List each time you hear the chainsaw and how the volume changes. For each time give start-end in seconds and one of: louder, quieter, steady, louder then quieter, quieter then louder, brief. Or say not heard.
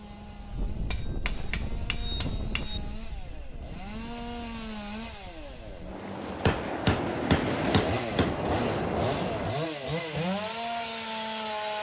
0.0-11.7 louder.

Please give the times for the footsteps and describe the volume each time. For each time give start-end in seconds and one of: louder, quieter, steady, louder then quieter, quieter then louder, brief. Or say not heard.
not heard.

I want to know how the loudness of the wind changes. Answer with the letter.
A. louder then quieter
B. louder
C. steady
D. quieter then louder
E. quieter
D.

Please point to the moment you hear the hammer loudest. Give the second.
7 s.